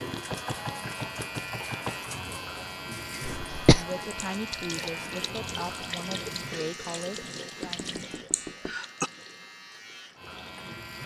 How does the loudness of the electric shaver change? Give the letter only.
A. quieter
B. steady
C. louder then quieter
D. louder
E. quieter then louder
A.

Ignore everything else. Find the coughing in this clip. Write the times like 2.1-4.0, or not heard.
3.2-3.9, 8.3-9.1.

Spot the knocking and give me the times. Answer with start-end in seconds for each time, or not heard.
0.1-2.0, 7.6-8.8.